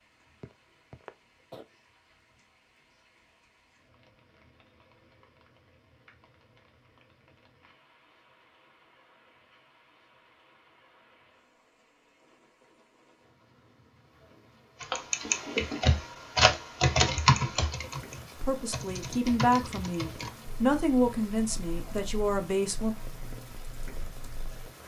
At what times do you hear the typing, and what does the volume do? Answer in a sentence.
You can hear the typing from 14.8 to 24.7 s, getting quieter.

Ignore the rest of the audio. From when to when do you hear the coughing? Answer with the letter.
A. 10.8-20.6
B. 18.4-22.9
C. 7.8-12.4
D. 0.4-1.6
D.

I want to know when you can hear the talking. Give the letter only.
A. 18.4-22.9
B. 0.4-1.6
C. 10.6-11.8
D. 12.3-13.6
A.